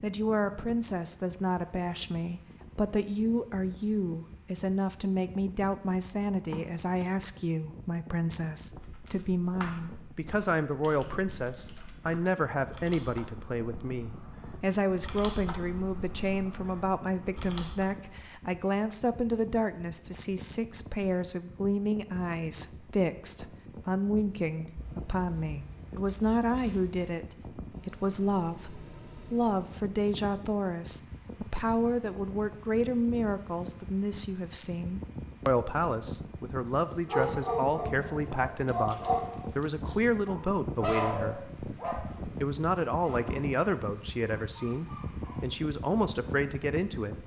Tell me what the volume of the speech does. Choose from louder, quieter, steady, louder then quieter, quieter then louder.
steady.